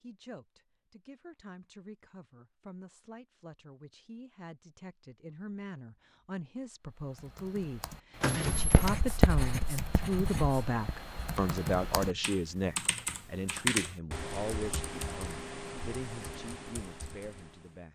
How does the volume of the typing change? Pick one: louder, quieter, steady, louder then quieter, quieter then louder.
louder then quieter.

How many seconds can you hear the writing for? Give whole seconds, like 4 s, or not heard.
3 s.